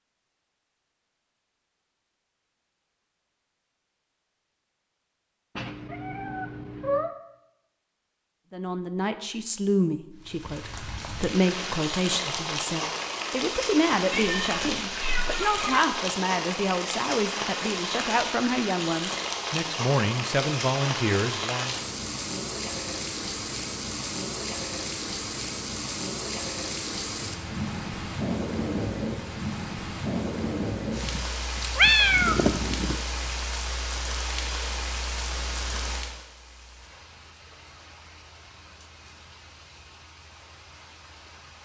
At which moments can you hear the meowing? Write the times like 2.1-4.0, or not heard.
5.5-7.1, 14.1-15.8, 31.1-33.0.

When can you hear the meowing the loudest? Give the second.
32 s.